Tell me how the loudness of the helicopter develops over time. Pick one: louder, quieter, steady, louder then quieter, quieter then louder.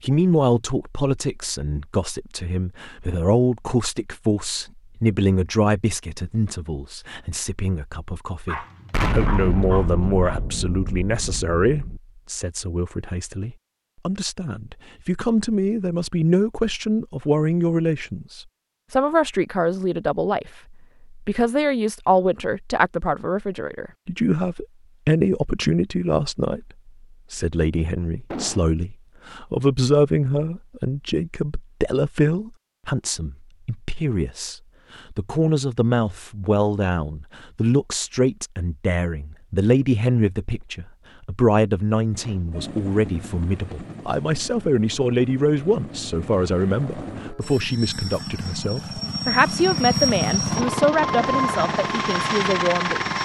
louder.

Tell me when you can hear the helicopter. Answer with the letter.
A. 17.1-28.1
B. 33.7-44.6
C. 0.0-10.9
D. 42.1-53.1
D.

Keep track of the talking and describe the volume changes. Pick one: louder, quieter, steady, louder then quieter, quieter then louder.
steady.